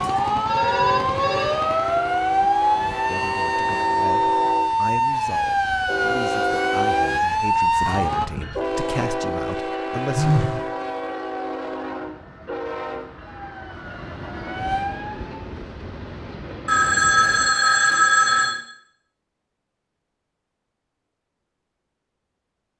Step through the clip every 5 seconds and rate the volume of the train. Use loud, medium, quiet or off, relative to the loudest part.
loud, loud, loud, medium, off.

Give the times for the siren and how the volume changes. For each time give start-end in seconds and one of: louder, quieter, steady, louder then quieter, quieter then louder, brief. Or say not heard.
0.0-8.3 steady
13.2-15.4 brief.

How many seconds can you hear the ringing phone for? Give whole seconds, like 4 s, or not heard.
4 s.